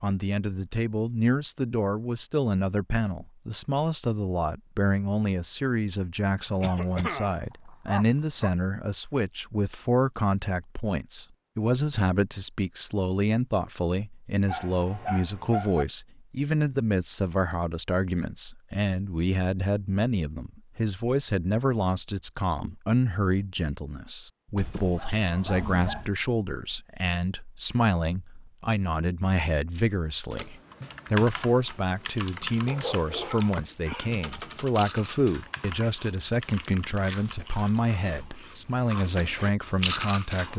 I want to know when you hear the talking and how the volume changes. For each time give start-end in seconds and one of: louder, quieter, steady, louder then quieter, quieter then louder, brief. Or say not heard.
0.0-40.5 steady.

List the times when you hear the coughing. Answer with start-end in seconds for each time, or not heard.
6.6-7.4.